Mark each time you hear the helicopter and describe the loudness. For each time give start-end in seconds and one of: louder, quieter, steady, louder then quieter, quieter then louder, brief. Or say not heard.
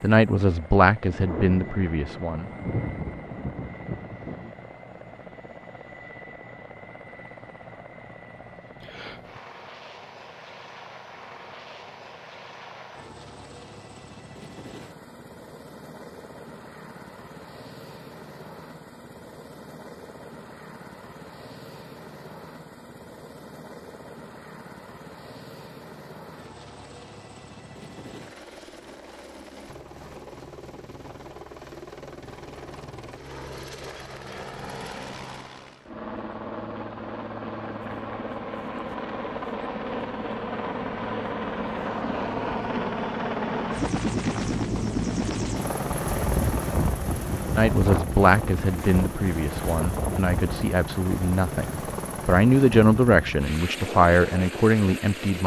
0.0-55.4 louder.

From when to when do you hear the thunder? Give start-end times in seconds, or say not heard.
1.1-4.5.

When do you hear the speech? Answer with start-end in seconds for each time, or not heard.
0.0-2.5, 47.5-55.4.